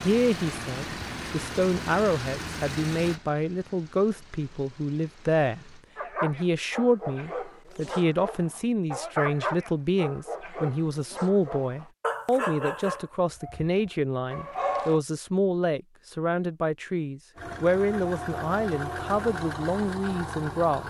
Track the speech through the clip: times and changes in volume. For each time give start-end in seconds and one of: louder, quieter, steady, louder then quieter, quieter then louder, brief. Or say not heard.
0.0-20.8 steady.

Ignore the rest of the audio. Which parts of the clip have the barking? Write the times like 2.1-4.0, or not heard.
6.0-15.0.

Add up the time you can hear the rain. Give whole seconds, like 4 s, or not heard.
not heard.